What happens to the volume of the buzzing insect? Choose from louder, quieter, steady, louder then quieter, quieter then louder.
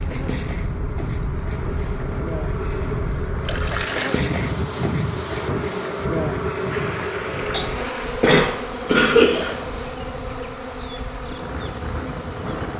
louder then quieter.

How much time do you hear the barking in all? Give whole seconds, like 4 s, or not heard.
not heard.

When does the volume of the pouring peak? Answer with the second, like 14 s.
4 s.